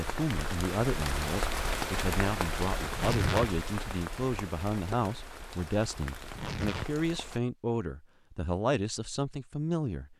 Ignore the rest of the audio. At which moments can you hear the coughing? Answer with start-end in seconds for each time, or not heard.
not heard.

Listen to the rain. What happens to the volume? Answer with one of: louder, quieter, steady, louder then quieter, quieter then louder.
quieter.